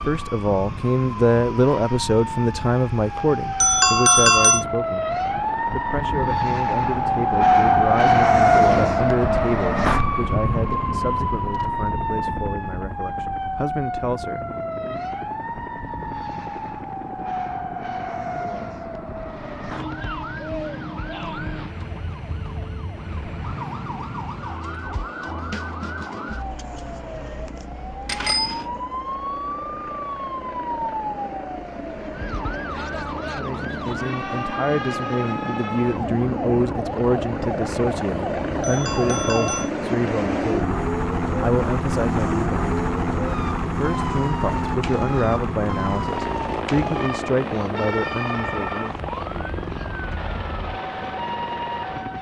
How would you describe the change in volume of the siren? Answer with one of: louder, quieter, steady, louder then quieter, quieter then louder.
quieter.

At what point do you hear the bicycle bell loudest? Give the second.
4 s.